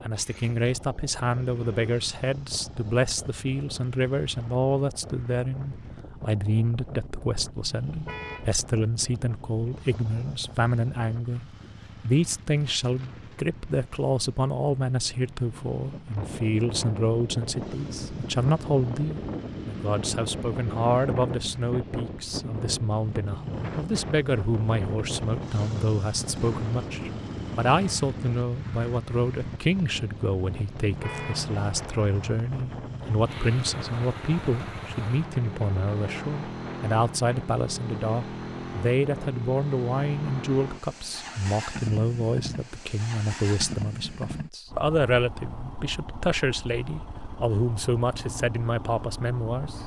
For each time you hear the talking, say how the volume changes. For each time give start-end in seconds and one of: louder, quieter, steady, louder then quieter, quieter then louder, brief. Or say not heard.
0.0-49.8 steady.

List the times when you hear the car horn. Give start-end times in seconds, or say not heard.
8.1-8.5, 31.0-31.5.